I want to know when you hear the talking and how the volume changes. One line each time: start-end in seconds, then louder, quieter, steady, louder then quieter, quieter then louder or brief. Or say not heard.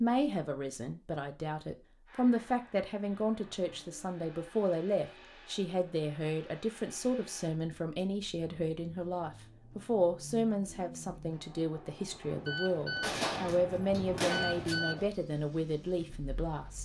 0.0-16.8 steady.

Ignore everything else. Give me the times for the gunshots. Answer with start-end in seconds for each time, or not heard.
13.0-14.8.